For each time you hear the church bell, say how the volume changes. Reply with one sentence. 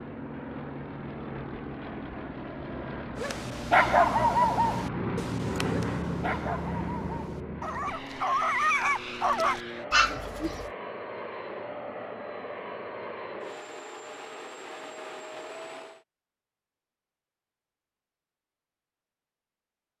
You can't hear the church bell here.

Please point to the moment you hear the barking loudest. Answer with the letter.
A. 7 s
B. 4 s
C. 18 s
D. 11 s
B.